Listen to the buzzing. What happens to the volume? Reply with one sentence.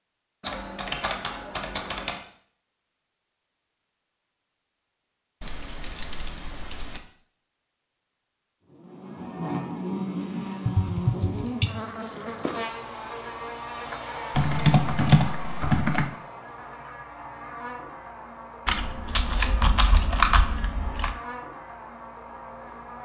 The loudness of the buzzing goes down.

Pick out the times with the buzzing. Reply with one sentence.
The buzzing can be heard from 8.7 to 23.0 s.